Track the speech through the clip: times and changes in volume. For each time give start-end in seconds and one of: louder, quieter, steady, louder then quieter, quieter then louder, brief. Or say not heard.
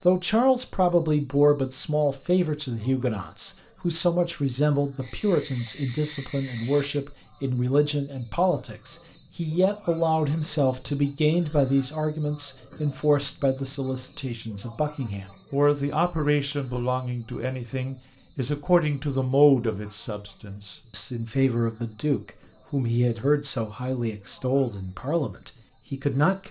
0.1-26.4 steady.